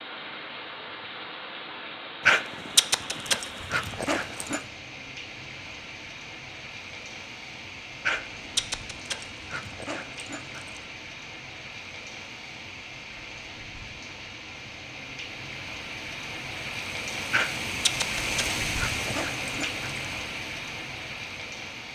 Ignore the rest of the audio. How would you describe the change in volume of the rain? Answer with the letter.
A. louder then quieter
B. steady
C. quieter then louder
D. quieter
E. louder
E.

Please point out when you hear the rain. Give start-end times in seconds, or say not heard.
0.0-21.9.